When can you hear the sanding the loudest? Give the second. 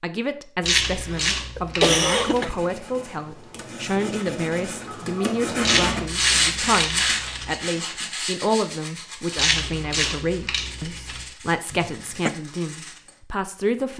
6 s.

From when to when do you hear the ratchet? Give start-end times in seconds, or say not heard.
0.7-2.5, 5.6-7.5, 9.3-11.2.